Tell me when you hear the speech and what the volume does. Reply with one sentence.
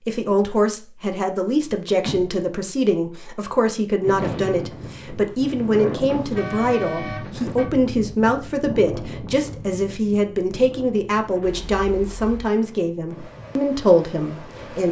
You can hear the speech from 0.0 to 14.8 s, at a steady volume.